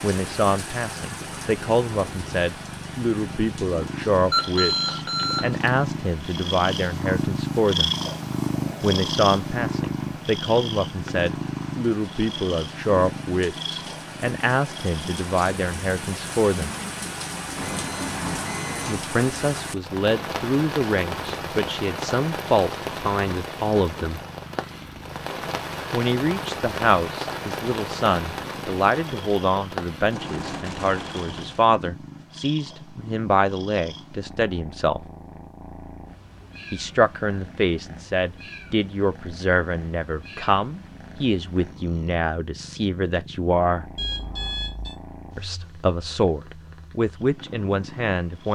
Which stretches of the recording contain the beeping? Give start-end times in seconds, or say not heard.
4.3-5.7, 17.6-19.1, 44.0-45.0.